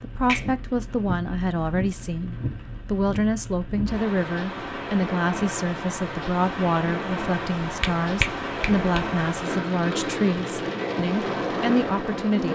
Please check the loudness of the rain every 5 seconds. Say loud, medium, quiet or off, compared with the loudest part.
medium, loud, loud.